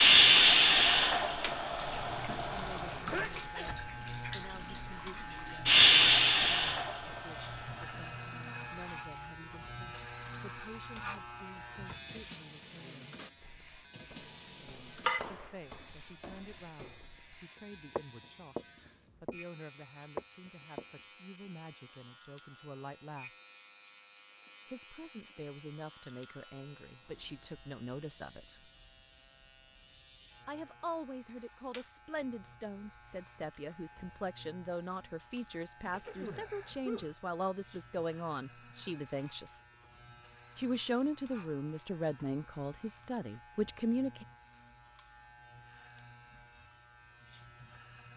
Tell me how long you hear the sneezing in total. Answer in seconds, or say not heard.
2 s.